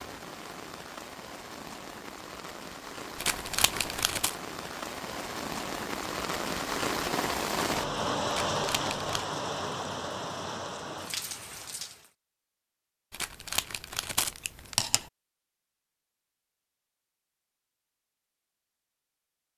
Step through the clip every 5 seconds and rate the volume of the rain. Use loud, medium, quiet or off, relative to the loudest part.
medium, loud, medium, off.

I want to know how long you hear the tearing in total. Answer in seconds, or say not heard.
4 s.